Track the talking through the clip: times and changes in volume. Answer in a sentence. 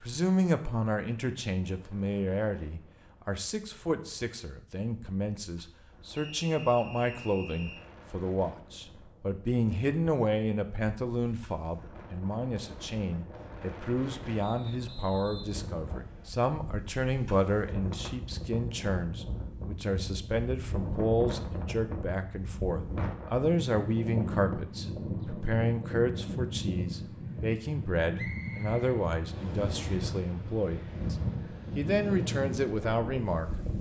The talking can be heard from 0.0 to 31.1 s, at a steady volume; and briefly from 31.8 to 33.5 s.